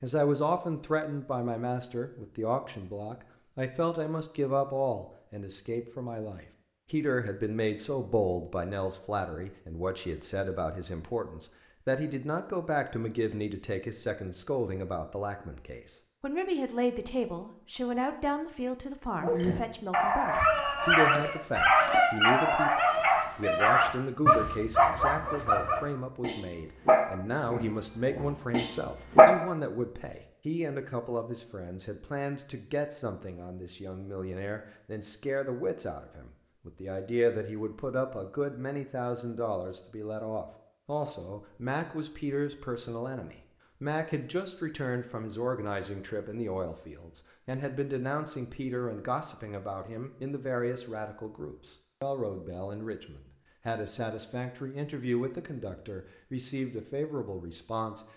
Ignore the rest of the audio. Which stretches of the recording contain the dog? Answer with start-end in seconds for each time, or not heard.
19.2-29.4.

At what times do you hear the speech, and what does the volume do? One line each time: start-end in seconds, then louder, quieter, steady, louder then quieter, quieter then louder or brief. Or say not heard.
0.0-58.0 steady.